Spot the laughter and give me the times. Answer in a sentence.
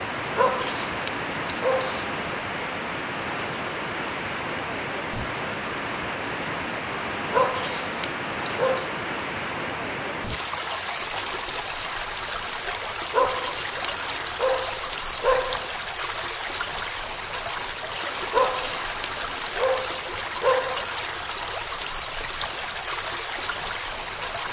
You can't hear the laughter here.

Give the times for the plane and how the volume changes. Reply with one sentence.
You can't hear the plane here.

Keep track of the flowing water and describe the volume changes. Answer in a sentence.
The volume of the flowing water stays about the same.